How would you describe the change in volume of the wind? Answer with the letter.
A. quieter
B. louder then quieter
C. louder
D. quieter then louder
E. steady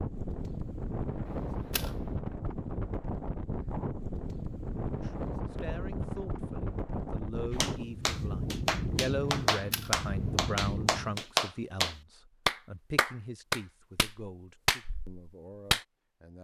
E.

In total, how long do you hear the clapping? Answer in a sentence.
The clapping can be heard for 8 seconds in total.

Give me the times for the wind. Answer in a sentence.
You can hear the wind from 0.0 to 11.2 s.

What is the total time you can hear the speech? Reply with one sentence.
You can hear the speech for 11 seconds altogether.